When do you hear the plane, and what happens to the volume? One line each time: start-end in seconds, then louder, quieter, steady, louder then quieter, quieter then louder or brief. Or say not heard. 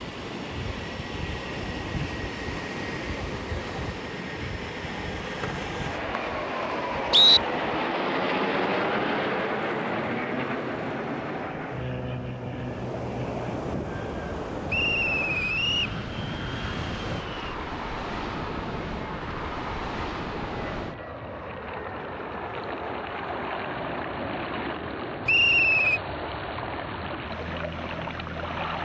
0.0-28.8 louder then quieter.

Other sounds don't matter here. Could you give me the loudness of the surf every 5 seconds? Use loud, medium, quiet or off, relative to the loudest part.
loud, medium, loud, loud, loud, loud.